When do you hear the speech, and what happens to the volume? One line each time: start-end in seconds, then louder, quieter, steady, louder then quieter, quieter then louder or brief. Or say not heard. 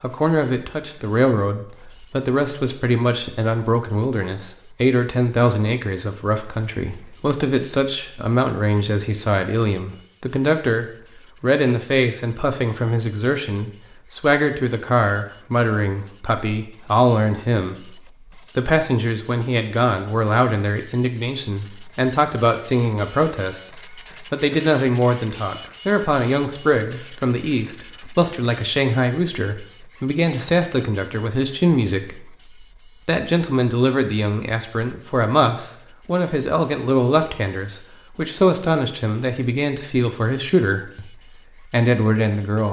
0.0-42.6 steady.